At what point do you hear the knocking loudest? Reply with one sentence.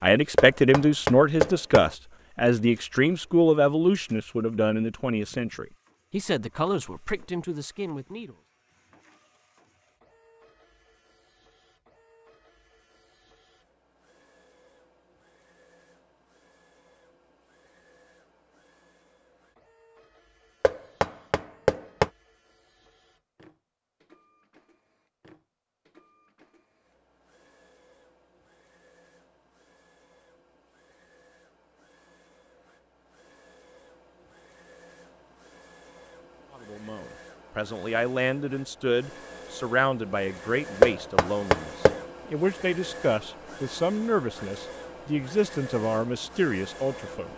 The volume of the knocking peaks at 41 seconds.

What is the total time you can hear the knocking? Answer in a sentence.
The knocking can be heard for 4 seconds in total.